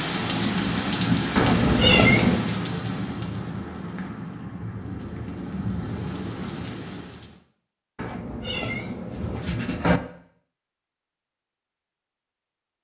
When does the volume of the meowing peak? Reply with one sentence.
The volume of the meowing peaks at 2 seconds.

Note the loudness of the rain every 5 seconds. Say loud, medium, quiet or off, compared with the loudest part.
loud, medium, off.